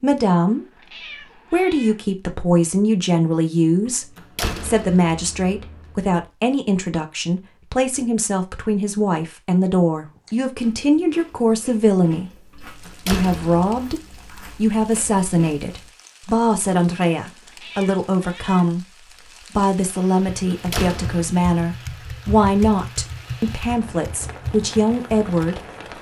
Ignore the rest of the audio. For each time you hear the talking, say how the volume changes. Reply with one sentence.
You can hear the talking from 0.0 to 25.9 s, at a steady volume.